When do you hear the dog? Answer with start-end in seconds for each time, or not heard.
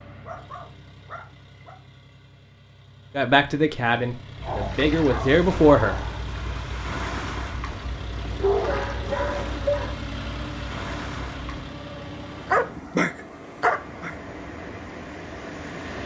0.2-1.8, 4.4-6.2, 8.4-9.9, 12.4-14.2.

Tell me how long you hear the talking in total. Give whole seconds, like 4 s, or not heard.
3 s.